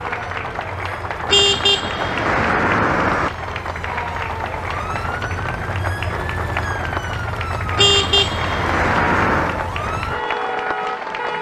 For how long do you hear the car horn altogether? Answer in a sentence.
You can hear the car horn for 4 seconds altogether.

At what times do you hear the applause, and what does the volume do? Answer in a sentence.
You can hear the applause from 0.0 to 11.3 s, at a steady volume.